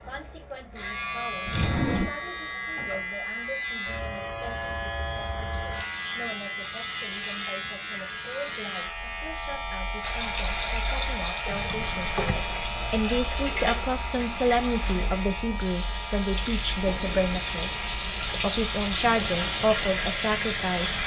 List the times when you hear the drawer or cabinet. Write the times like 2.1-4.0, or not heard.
1.4-2.1, 11.5-12.4, 16.8-17.6.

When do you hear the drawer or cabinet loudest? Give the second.
2 s.